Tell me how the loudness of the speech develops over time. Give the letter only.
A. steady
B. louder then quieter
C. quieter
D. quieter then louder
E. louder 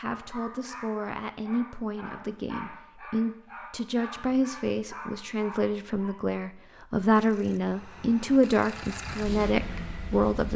E.